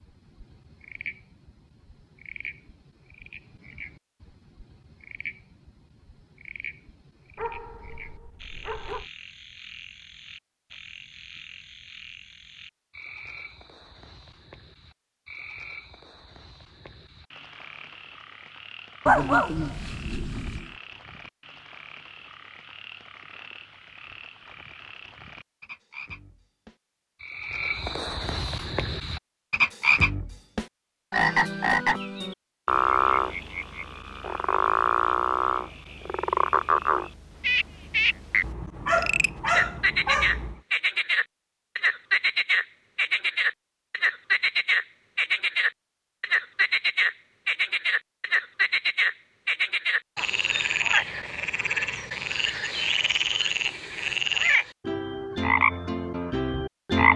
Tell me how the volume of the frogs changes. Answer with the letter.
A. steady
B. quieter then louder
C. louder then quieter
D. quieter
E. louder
E.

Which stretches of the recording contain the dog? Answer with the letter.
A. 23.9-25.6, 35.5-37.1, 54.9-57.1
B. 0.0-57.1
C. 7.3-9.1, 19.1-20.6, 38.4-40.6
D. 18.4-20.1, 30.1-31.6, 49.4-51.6
C.